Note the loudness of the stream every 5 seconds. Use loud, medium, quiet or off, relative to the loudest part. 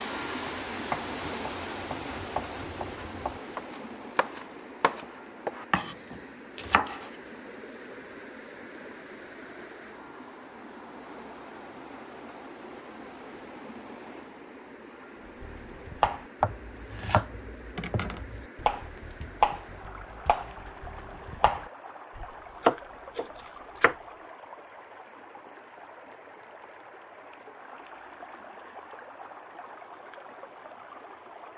loud, medium, medium, medium, medium, medium, medium.